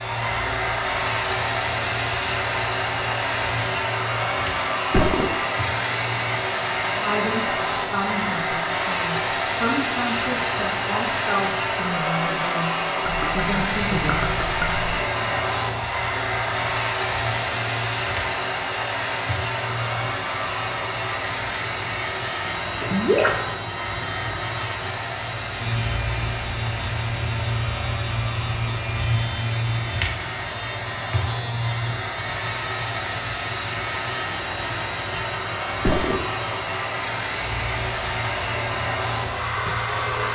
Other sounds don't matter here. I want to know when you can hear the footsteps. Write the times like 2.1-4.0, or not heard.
not heard.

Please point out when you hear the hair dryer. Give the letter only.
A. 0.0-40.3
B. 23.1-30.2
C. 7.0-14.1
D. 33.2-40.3
A.